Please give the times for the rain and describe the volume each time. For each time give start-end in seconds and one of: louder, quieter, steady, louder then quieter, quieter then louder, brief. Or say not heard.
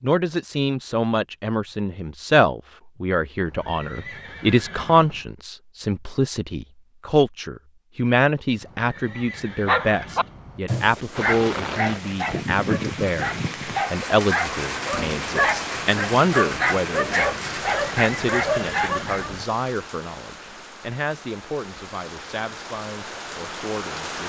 11.1-24.2 quieter.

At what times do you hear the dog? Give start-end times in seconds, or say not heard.
9.7-19.3.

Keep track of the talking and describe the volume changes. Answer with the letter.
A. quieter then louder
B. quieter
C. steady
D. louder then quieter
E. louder
B.